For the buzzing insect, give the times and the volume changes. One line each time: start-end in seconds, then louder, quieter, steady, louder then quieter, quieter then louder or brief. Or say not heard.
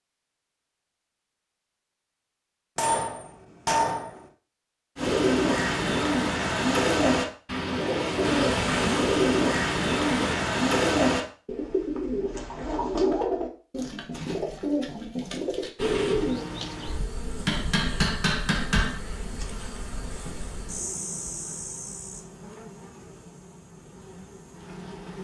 8.2-10.4 brief
15.8-25.2 quieter.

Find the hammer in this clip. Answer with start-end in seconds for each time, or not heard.
2.8-4.2, 17.4-19.0.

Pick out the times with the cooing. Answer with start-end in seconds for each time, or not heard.
5.0-16.4.